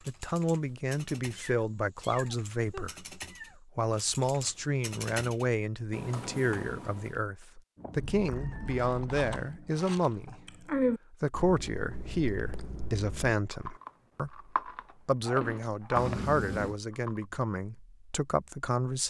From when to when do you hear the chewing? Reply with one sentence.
The chewing can be heard from 7.8 to 17.2 s.